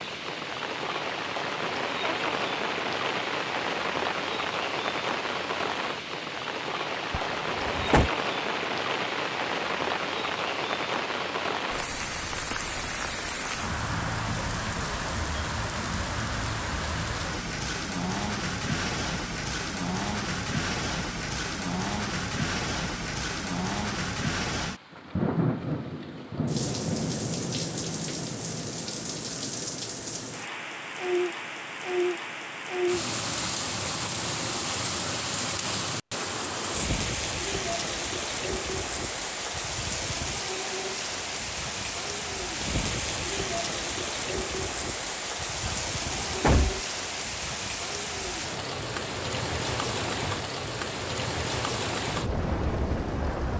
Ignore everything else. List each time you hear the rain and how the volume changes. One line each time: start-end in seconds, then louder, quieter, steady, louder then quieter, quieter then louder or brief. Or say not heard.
0.0-53.5 steady.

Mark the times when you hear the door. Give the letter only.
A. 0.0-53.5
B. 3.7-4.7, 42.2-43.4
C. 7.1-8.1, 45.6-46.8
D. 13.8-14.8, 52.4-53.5
C.